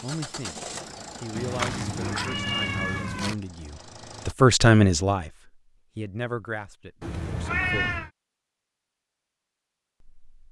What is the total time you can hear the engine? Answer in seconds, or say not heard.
4 s.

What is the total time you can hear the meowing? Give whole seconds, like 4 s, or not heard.
3 s.